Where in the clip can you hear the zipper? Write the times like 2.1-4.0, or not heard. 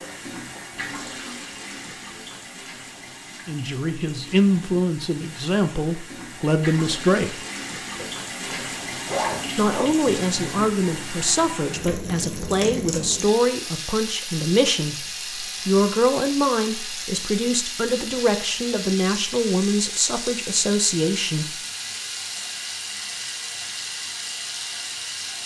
8.0-9.9.